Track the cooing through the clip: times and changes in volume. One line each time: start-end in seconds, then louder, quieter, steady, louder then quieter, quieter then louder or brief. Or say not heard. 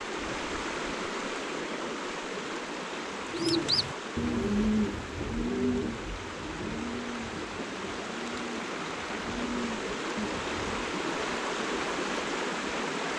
3.2-10.9 quieter then louder.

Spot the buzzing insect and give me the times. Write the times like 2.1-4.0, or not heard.
not heard.